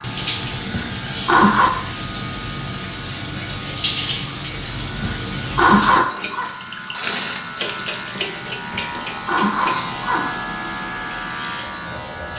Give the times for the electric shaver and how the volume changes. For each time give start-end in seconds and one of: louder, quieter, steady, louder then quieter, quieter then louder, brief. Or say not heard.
0.0-12.3 louder.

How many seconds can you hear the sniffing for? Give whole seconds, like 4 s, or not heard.
5 s.